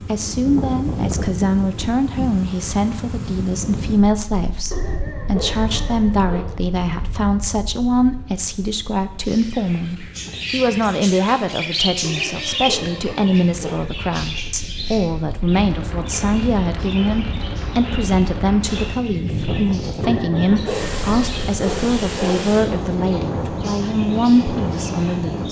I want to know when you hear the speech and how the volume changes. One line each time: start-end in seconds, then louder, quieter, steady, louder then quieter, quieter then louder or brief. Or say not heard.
0.0-25.4 steady.